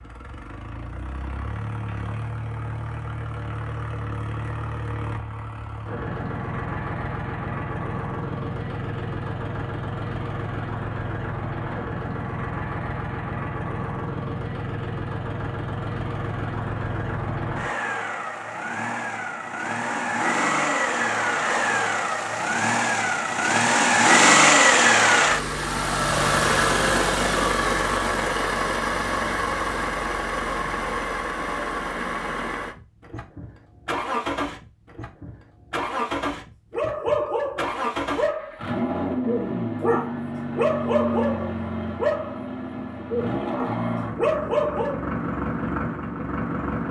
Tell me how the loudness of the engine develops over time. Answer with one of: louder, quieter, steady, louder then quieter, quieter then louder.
louder then quieter.